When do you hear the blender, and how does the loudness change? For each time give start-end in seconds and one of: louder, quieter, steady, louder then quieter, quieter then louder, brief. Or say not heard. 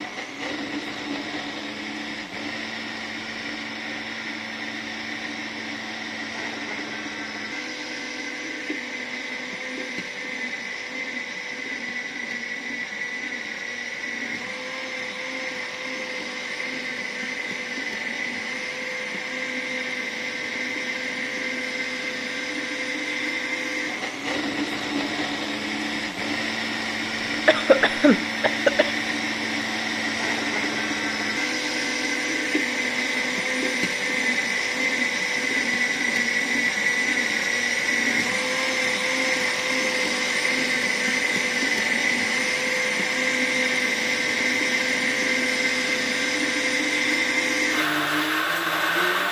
0.0-49.2 louder.